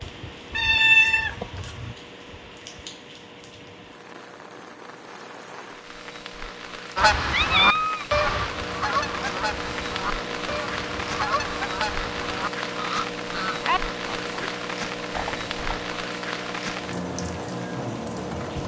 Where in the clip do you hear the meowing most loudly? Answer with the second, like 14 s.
1 s.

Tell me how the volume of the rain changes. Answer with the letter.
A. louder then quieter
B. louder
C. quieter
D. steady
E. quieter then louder
B.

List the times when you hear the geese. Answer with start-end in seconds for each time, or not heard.
7.0-14.6.